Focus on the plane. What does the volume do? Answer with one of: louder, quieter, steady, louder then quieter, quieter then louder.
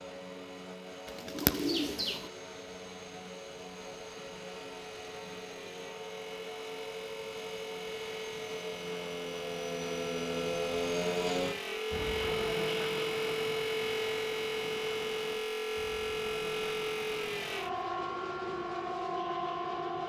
louder then quieter.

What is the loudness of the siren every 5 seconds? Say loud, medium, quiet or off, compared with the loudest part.
quiet, medium, loud, loud.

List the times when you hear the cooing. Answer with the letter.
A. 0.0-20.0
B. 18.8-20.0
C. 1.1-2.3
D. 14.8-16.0
C.